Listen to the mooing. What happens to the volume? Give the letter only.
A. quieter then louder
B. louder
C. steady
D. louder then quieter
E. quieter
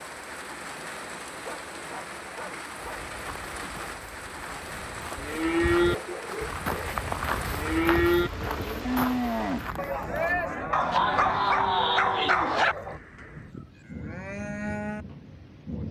E.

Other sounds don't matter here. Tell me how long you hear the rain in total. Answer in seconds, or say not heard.
16 s.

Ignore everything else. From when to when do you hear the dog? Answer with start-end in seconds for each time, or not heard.
1.4-3.0, 5.8-7.0, 10.7-12.8.